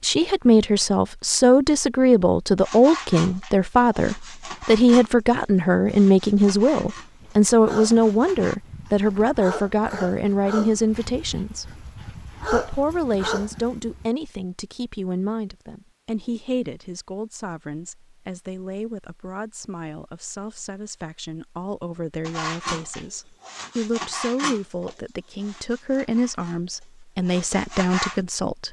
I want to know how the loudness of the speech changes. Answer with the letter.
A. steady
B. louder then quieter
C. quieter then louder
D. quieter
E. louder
C.